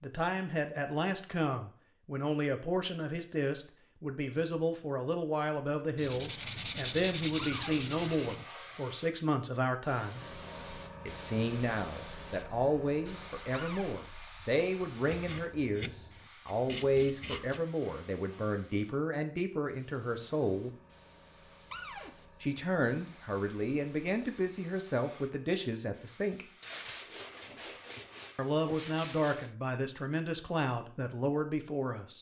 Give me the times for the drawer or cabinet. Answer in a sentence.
The drawer or cabinet can be heard from 7.3 to 7.8 s, from 13.5 to 13.9 s and from 21.7 to 22.1 s.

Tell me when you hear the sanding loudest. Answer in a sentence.
The loudest moment of the sanding is at 7 seconds.